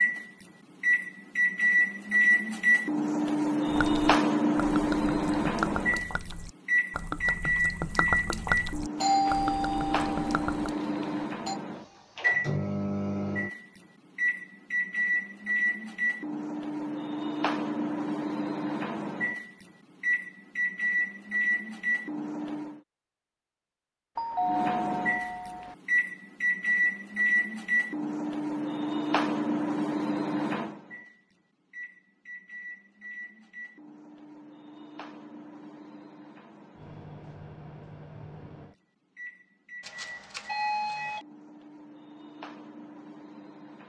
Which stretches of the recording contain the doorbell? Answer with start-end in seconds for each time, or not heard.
9.0-11.6, 24.1-25.8, 39.8-41.2.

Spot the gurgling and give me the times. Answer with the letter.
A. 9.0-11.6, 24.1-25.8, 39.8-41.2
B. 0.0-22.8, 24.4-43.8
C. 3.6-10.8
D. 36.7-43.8
C.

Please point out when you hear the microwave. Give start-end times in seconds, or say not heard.
0.0-22.8, 24.4-43.8.